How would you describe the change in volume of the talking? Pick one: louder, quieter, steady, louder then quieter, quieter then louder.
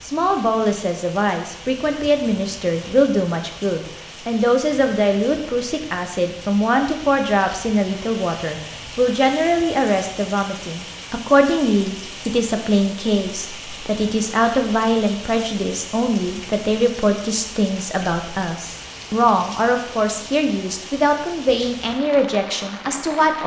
steady.